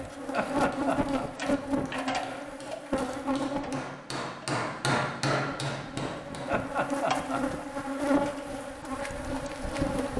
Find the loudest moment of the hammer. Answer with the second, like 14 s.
5 s.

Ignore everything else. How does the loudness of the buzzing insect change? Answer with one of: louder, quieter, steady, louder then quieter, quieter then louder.
quieter then louder.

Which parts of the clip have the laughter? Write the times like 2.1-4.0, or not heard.
0.3-1.2, 6.5-7.7.